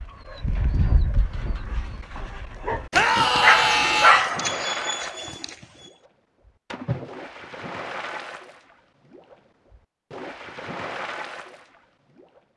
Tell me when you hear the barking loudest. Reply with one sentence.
The volume of the barking peaks at 4 seconds.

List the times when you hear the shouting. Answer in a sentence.
You can hear the shouting from 2.9 to 4.2 s.